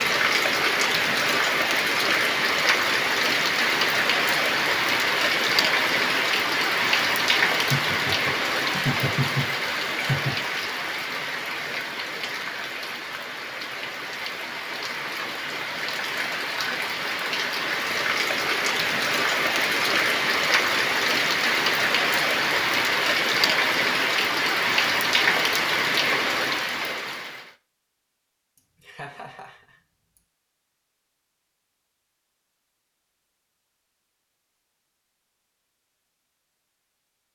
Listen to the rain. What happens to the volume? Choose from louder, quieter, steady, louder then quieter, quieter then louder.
quieter then louder.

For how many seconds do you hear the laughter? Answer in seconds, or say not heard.
4 s.